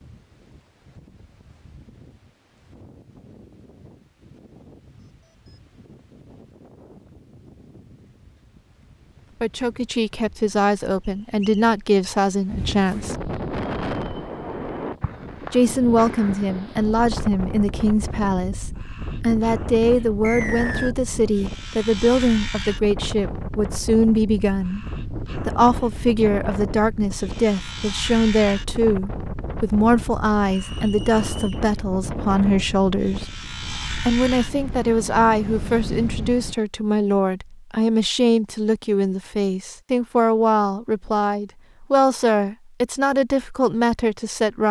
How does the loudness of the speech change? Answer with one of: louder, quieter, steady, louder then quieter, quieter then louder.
steady.